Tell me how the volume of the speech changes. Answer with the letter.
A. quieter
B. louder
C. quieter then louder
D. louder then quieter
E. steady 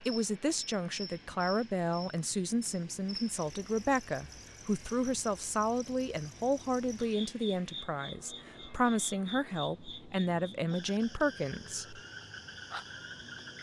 E.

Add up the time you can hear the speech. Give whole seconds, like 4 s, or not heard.
12 s.